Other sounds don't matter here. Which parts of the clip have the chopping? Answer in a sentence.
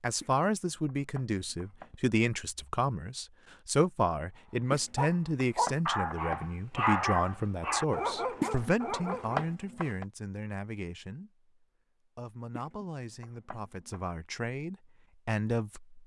The chopping can be heard from 0.2 to 2.0 s, from 4.7 to 6.5 s, from 8.4 to 10.1 s and from 12.6 to 14.1 s.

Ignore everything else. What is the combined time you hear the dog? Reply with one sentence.
The dog can be heard for 5 seconds in total.